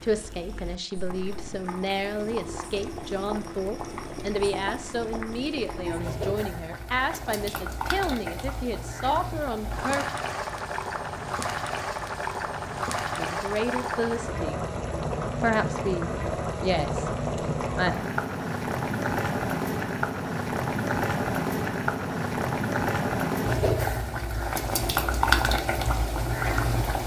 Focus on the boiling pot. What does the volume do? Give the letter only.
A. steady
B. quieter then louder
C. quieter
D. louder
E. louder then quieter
D.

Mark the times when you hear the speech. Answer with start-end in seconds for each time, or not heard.
0.0-10.1, 13.2-14.6, 15.3-17.9.